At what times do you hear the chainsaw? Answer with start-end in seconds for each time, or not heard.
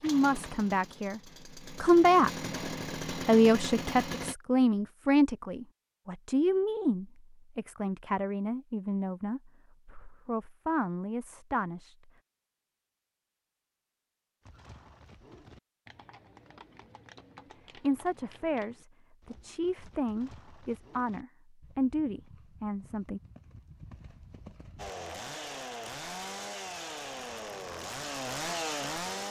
0.0-4.3, 24.8-29.2.